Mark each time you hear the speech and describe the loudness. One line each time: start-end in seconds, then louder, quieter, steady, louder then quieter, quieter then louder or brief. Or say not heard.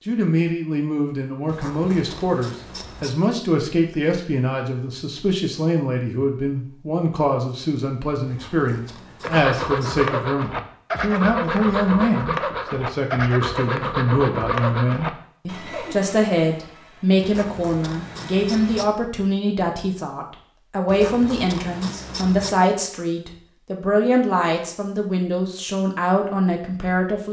0.1-27.2 steady.